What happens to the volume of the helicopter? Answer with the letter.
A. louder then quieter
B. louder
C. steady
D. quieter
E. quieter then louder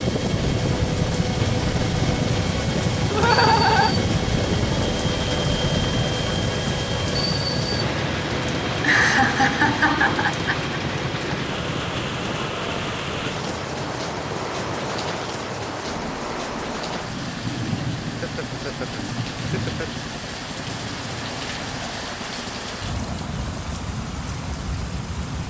D.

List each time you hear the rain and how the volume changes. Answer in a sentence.
You can hear the rain from 0.0 to 25.4 s, at a steady volume.